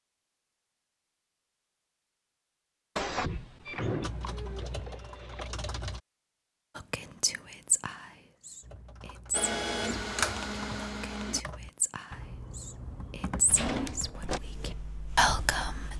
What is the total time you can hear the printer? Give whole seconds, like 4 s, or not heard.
4 s.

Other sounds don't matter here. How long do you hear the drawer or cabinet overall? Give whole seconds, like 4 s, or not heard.
2 s.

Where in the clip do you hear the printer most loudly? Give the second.
10 s.